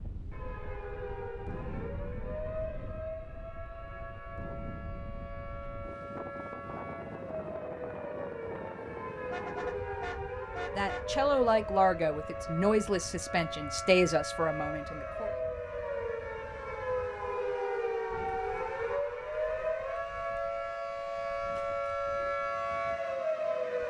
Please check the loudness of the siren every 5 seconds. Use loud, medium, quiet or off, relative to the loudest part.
medium, medium, medium, loud, loud.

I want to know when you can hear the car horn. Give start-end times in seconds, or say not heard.
9.2-11.1.